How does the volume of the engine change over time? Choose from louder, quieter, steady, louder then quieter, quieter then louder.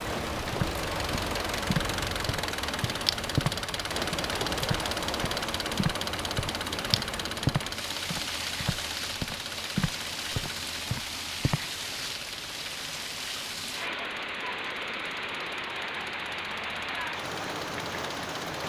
quieter.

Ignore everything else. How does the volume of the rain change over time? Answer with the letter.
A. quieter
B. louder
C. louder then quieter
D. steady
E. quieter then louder
D.